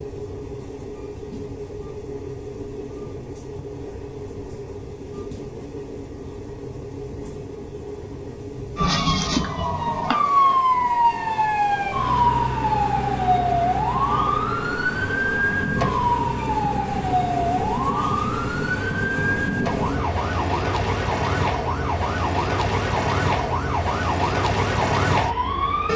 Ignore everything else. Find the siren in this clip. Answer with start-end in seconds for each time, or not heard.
8.8-25.9.